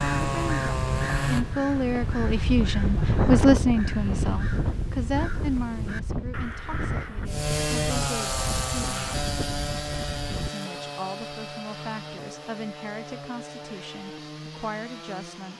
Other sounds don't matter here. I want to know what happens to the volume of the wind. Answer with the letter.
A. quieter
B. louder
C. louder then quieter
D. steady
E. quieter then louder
A.